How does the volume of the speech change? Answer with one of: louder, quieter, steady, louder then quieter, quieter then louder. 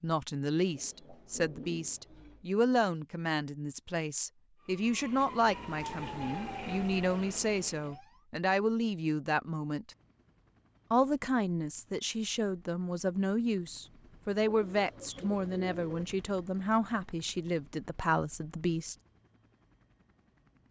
steady.